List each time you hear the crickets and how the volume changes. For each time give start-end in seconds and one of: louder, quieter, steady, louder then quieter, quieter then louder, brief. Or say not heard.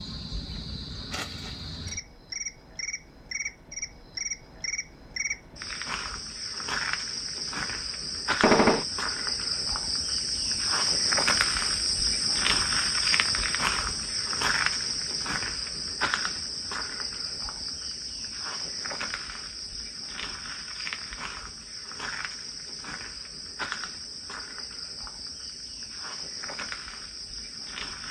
0.0-28.0 louder then quieter.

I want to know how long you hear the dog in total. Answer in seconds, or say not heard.
not heard.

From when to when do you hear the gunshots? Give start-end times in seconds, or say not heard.
8.4-8.8.